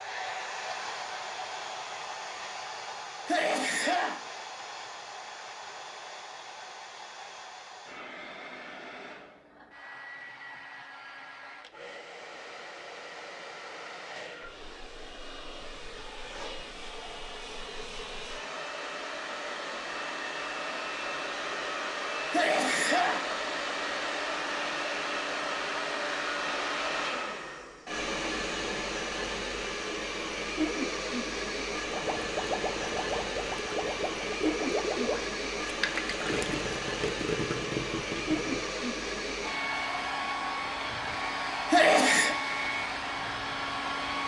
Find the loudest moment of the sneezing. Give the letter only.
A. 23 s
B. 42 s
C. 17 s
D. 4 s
B.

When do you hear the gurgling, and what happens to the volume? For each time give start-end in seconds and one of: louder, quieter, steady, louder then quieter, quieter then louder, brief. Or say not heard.
31.9-38.6 steady.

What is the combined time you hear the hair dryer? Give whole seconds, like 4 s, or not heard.
44 s.